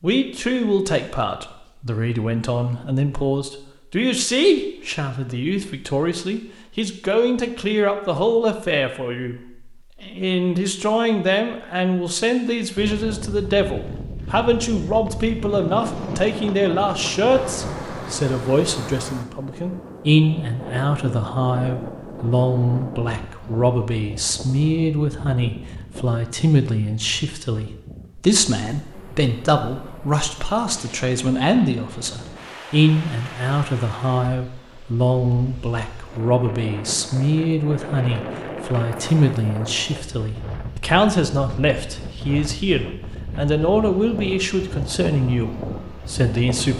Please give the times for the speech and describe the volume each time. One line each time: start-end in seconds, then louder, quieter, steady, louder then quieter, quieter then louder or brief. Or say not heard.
0.0-46.7 steady.